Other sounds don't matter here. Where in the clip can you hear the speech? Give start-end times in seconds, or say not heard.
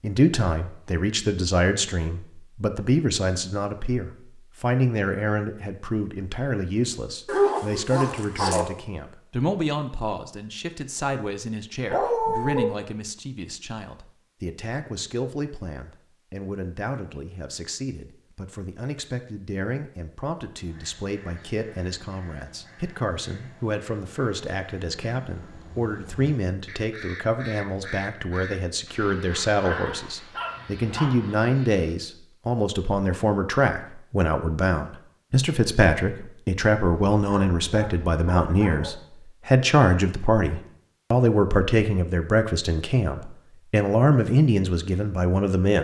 0.0-45.8.